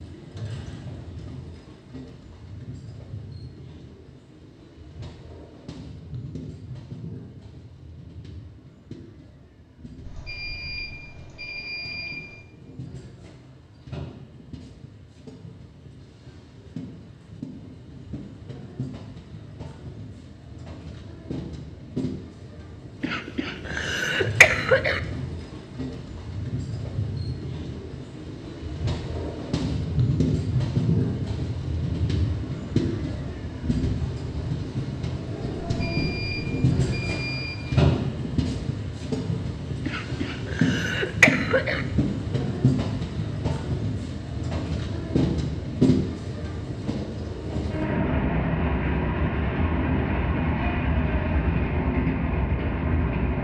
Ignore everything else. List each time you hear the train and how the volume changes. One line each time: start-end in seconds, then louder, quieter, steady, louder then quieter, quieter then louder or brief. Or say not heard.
0.0-53.3 louder.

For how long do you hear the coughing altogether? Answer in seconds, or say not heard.
4 s.